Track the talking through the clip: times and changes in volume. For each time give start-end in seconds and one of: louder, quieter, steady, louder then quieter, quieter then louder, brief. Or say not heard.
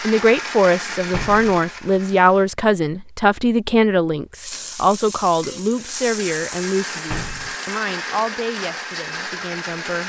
0.0-10.0 quieter.